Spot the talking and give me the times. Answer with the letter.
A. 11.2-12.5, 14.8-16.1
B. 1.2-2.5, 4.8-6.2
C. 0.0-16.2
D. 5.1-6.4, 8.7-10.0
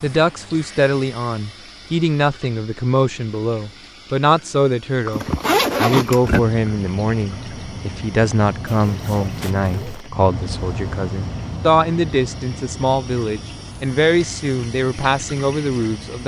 C.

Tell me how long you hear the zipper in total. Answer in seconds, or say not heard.
3 s.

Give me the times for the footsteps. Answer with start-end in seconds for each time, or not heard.
not heard.